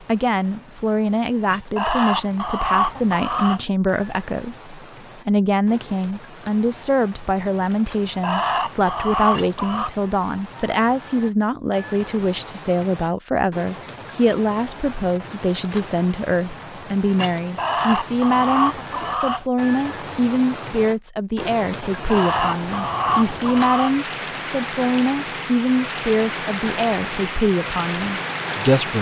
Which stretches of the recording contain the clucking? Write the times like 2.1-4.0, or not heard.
1.8-3.6, 8.2-9.9, 17.6-19.4, 22.1-23.9.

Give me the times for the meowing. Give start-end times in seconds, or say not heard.
not heard.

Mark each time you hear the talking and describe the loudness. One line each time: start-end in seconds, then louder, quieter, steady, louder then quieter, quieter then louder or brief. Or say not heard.
0.1-28.9 steady.